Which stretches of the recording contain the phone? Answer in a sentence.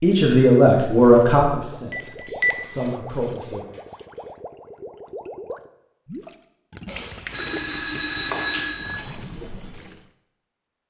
The phone can be heard from 1.9 to 2.5 s and from 6.8 to 9.1 s.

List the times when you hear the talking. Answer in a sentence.
You can hear the talking from 0.0 to 3.6 s.